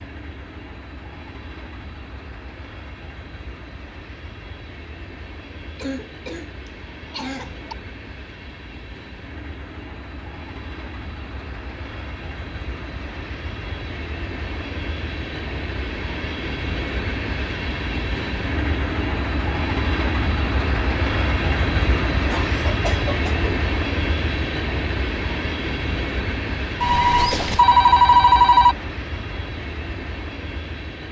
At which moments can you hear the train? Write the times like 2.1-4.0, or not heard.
0.0-31.0.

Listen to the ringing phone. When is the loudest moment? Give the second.
28 s.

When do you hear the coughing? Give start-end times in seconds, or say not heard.
5.8-7.8, 22.3-23.5.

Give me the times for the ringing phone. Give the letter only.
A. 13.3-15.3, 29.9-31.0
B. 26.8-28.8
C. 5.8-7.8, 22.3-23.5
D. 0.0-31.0
B.